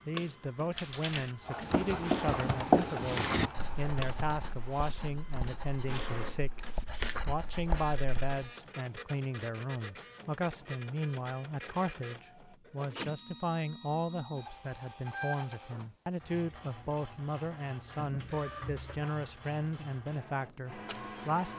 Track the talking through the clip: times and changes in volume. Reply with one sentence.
The talking can be heard from 0.1 to 21.5 s, at a steady volume.